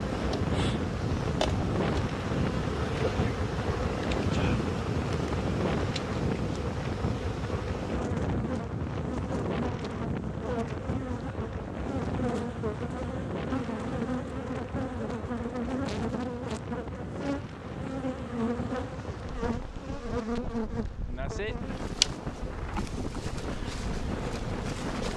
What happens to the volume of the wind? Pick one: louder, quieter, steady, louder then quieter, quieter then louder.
quieter.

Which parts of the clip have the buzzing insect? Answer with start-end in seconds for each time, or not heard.
0.0-25.1.